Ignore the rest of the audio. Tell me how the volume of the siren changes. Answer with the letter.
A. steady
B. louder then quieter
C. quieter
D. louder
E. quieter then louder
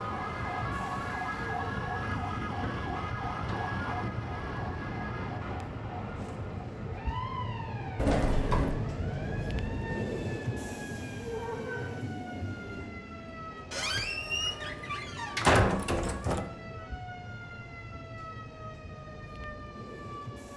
C.